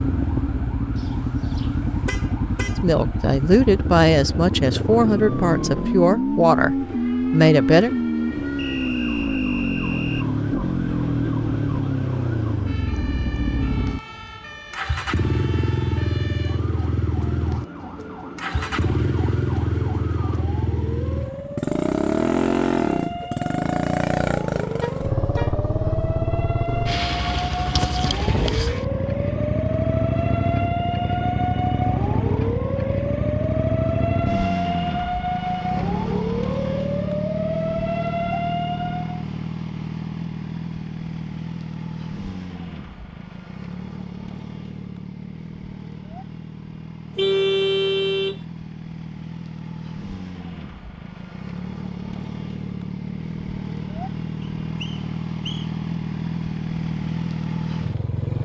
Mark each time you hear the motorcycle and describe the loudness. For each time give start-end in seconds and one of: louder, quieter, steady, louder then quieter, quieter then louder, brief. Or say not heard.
0.0-58.4 quieter.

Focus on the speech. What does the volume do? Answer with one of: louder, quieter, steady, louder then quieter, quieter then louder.
steady.